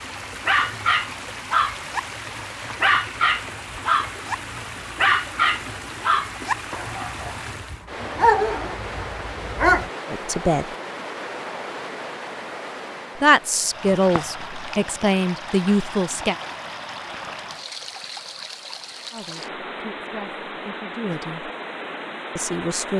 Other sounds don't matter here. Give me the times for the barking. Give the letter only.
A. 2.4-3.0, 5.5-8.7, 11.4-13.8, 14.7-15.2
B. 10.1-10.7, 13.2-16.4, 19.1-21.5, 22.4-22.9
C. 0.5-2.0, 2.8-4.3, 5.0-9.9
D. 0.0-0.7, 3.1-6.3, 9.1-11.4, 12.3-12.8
C.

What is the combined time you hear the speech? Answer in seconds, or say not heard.
7 s.